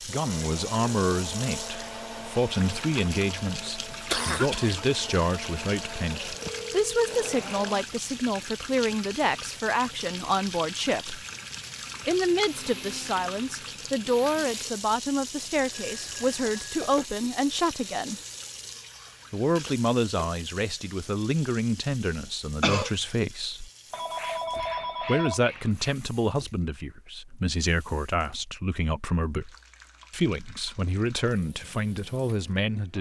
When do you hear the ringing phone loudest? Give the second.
25 s.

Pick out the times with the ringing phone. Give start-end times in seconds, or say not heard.
6.2-7.2, 15.4-17.1, 23.9-25.9.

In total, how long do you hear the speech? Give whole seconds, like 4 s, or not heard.
29 s.